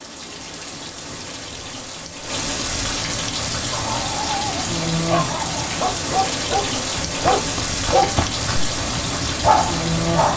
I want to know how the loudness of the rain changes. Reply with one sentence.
The loudness of the rain goes up.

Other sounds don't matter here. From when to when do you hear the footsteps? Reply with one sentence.
The footsteps can be heard from 7.0 to 10.3 s.